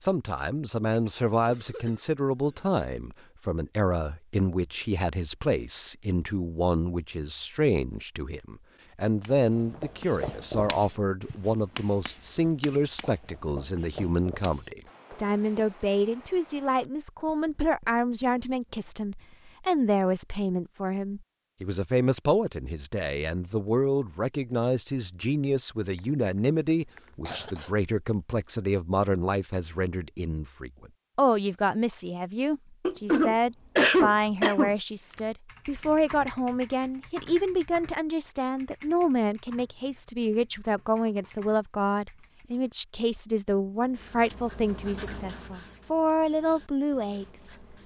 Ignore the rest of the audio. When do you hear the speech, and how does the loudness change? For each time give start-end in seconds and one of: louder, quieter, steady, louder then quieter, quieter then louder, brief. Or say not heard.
0.0-47.8 steady.